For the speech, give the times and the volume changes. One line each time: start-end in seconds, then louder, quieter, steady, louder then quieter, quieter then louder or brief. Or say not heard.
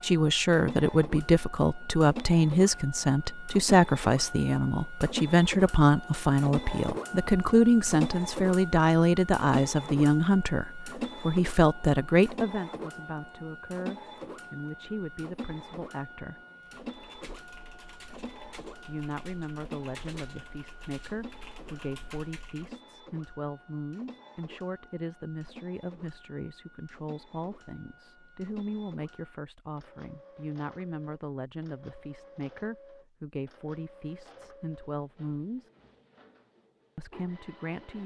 0.0-16.4 quieter
18.9-35.7 steady
37.0-38.0 brief.